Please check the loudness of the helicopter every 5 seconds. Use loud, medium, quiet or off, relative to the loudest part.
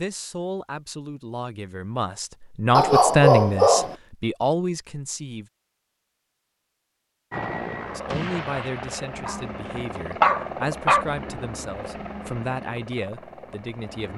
off, loud, loud.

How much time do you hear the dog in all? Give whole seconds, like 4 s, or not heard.
3 s.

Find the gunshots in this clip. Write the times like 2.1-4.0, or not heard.
8.1-9.3.